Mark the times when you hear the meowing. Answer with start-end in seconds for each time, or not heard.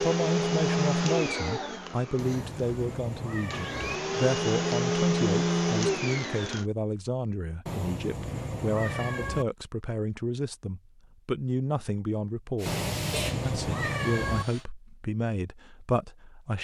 2.1-4.0, 7.7-9.4, 12.7-14.4.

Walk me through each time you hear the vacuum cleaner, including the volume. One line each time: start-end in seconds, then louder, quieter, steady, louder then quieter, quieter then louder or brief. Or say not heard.
0.0-6.7 quieter then louder
12.6-14.7 brief.